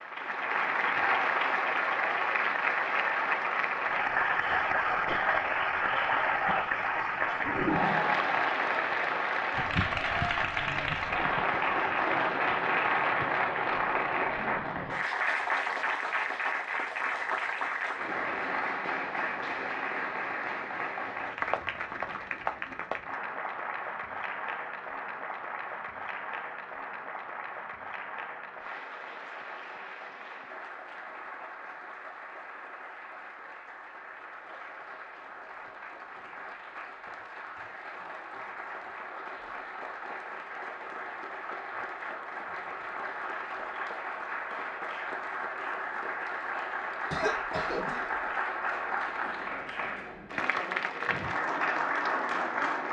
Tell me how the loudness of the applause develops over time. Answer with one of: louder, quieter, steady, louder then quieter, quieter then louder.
quieter then louder.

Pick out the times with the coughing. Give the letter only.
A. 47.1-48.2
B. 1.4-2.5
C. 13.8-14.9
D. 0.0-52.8
A.